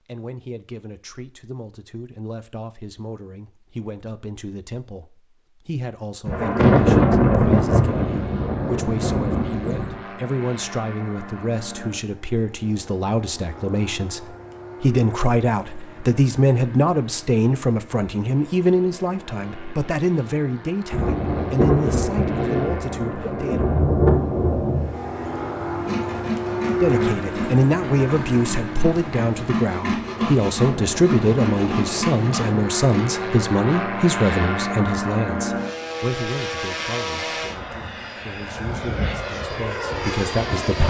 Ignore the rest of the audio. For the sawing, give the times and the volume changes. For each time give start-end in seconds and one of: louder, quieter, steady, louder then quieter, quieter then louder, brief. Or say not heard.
25.8-33.2 quieter then louder.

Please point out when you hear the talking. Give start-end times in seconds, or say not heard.
0.1-23.6, 26.8-40.8.